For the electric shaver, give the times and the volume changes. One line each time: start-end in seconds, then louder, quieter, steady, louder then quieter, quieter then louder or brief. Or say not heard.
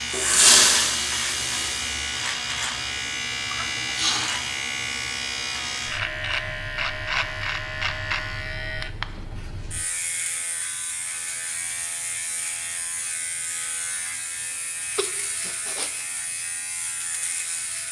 0.0-17.8 quieter.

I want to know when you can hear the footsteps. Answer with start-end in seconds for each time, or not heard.
not heard.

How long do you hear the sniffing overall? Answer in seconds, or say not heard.
2 s.